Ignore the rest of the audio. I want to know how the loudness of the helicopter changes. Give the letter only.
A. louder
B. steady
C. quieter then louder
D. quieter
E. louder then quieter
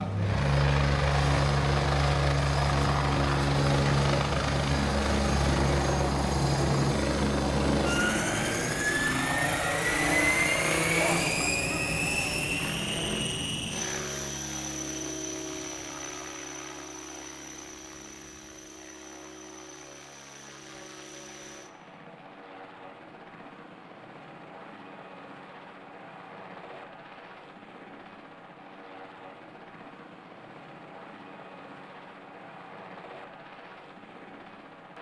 D.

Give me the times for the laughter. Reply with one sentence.
The laughter can be heard from 10.9 to 12.3 s.